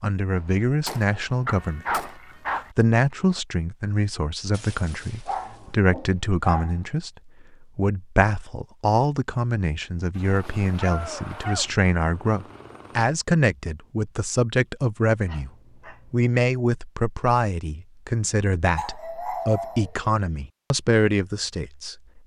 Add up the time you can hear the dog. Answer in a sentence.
You can hear the dog for 7 seconds altogether.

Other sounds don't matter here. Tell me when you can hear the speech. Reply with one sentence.
You can hear the speech from 0.0 to 15.5 s and from 16.1 to 22.2 s.